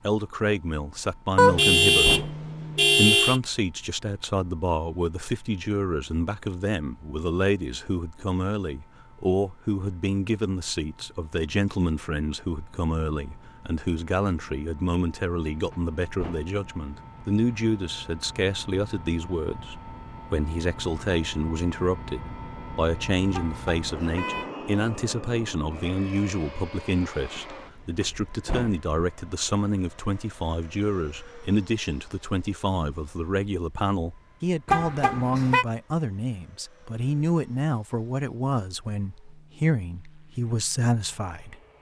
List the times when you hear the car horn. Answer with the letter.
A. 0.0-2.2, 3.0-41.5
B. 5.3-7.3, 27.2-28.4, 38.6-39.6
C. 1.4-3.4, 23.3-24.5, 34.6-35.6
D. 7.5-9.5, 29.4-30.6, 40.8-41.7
C.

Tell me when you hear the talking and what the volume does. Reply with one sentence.
The talking can be heard briefly from 0.0 to 2.2 s; and from 3.0 to 41.5 s, at a steady volume.